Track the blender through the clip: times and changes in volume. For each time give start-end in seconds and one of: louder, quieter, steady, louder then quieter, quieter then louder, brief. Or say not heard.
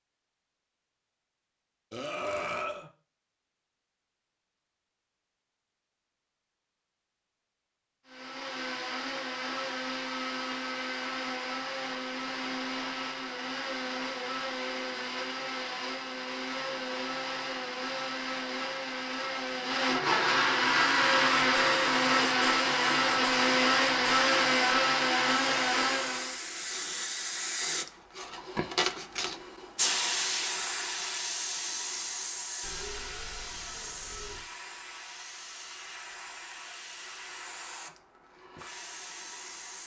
8.1-26.4 louder.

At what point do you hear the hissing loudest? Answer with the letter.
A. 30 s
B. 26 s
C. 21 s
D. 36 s
A.